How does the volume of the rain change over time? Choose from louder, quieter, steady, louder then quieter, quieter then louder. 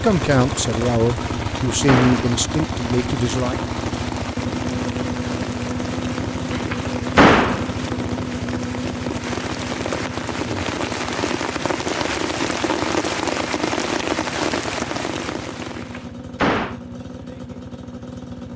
louder.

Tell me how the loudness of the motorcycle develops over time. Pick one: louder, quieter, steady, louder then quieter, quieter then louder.
quieter.